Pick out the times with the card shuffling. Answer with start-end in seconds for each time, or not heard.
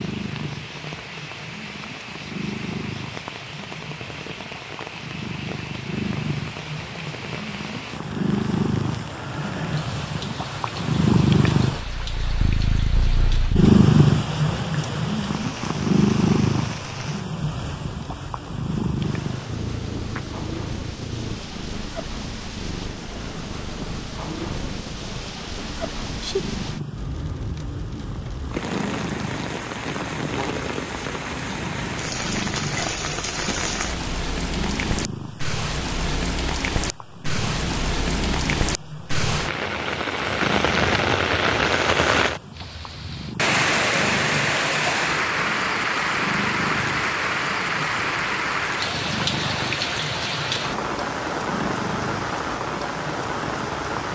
not heard.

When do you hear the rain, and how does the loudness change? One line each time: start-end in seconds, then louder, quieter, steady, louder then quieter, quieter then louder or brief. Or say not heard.
0.0-54.1 louder.